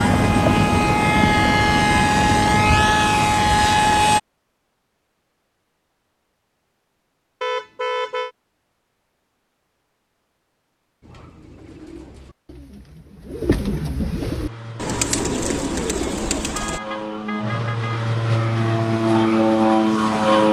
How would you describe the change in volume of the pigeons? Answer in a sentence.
The loudness of the pigeons goes up.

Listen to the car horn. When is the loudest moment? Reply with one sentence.
The loudest moment of the car horn is at 8 seconds.